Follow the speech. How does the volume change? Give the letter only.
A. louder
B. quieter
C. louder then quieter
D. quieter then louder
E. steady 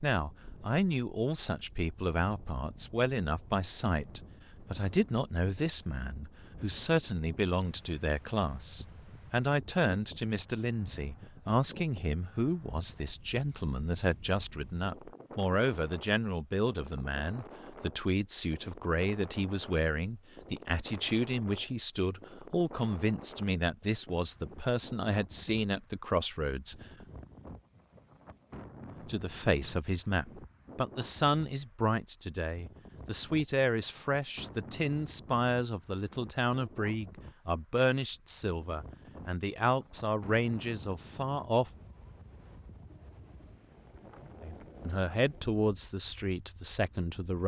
E.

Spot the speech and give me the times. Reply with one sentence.
The speech can be heard from 0.0 to 26.9 s, from 29.1 to 41.7 s and from 44.4 to 47.4 s.